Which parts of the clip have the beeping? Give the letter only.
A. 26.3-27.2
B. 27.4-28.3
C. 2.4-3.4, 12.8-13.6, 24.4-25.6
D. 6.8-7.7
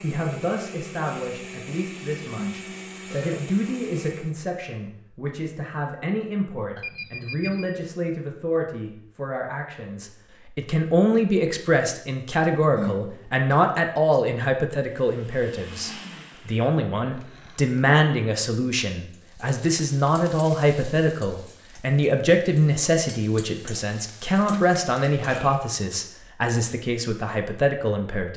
D.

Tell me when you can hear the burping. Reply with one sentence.
You can hear the burping from 2.4 to 3.4 s, from 12.8 to 13.6 s and from 24.4 to 25.6 s.